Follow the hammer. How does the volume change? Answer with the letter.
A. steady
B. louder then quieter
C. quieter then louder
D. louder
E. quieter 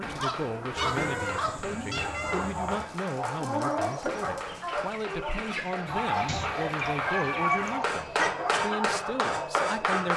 D.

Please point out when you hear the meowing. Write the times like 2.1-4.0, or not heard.
0.8-2.8, 6.2-8.3.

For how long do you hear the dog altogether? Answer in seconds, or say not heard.
10 s.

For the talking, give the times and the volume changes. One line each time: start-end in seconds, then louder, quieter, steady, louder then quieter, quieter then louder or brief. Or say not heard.
0.0-10.1 steady.